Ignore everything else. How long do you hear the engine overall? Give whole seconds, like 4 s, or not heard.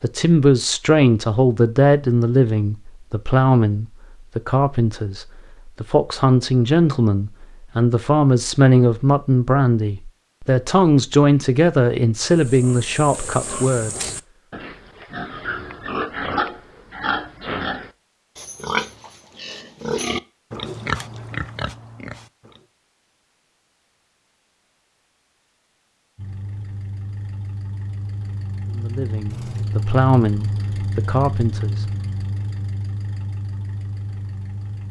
9 s.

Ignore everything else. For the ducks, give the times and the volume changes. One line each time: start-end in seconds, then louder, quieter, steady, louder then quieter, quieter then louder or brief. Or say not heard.
not heard.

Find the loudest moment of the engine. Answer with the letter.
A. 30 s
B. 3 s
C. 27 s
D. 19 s
A.